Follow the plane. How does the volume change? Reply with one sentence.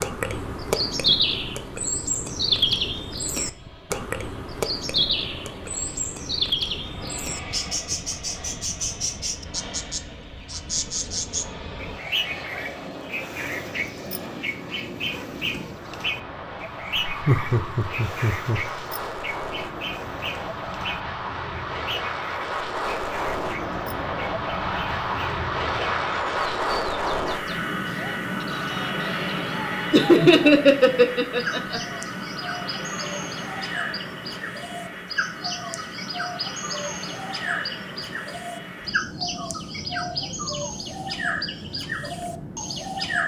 The volume of the plane goes up, then down.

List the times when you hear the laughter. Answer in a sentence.
The laughter can be heard from 16.9 to 18.6 s and from 29.9 to 31.8 s.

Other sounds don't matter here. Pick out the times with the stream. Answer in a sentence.
You can't hear the stream here.